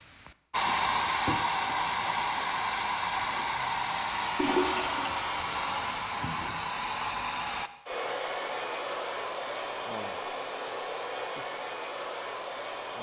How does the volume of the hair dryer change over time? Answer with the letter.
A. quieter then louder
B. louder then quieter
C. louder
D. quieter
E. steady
D.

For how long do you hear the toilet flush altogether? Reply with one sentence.
The toilet flush can be heard for 2 seconds in total.